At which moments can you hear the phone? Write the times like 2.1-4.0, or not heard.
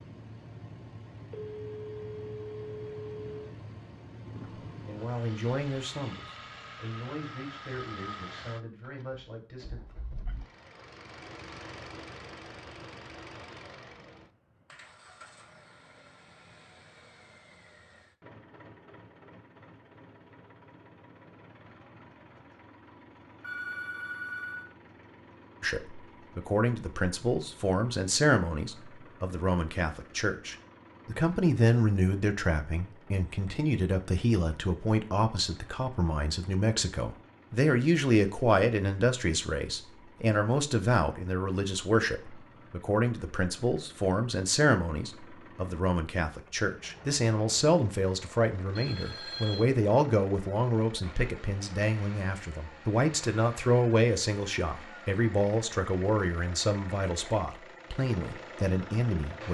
1.3-3.3, 23.4-24.7, 48.8-49.6.